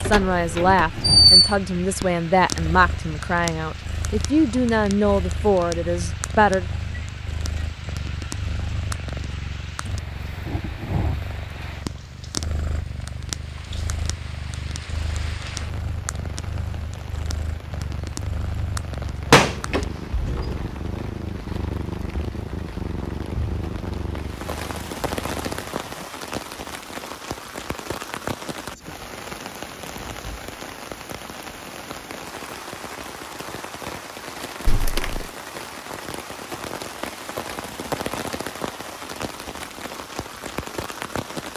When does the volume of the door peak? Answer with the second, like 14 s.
1 s.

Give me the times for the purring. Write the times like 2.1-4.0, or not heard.
0.0-26.1.